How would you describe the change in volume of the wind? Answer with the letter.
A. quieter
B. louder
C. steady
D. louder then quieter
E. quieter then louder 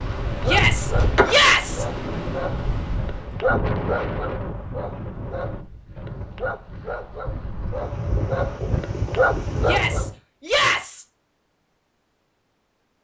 E.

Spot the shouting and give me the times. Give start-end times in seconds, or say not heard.
0.5-1.9, 9.6-11.1.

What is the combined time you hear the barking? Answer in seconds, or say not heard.
10 s.